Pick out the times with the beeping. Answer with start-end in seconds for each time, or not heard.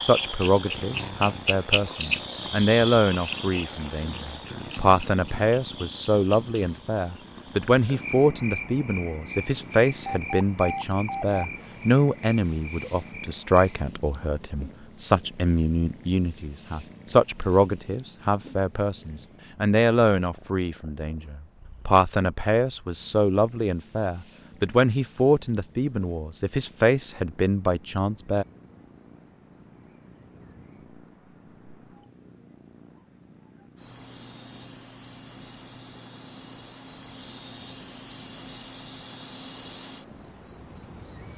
9.9-11.4.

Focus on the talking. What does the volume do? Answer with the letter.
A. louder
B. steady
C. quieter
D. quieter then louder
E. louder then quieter
B.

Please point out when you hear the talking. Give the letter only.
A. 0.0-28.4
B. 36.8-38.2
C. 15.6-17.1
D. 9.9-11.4
A.